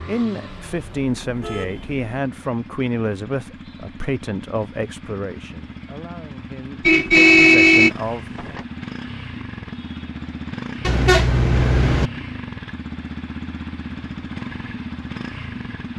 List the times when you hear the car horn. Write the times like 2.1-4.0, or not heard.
0.6-2.0, 6.8-8.6, 10.8-12.1.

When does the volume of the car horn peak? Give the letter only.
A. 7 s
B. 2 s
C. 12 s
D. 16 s
A.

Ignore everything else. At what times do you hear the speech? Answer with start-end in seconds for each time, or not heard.
0.0-8.6.